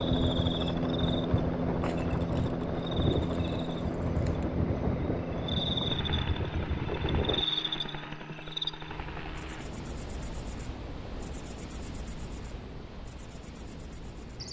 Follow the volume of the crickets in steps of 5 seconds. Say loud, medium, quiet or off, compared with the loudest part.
medium, loud, medium.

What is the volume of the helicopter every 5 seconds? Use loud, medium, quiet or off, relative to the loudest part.
loud, medium, quiet.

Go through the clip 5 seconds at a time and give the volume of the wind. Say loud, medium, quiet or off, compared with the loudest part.
loud, loud, off.